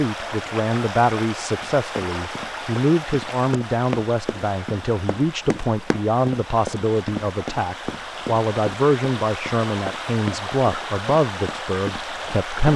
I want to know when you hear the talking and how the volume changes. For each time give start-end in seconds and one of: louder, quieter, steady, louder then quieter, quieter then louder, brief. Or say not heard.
0.0-12.7 steady.